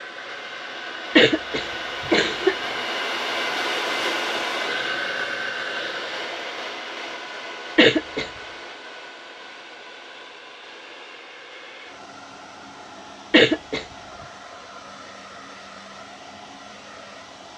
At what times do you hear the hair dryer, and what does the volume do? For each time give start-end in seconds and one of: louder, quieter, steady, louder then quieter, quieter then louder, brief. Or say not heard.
0.0-17.5 quieter.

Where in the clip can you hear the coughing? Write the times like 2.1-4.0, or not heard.
1.1-2.5, 7.8-8.3, 13.3-13.8.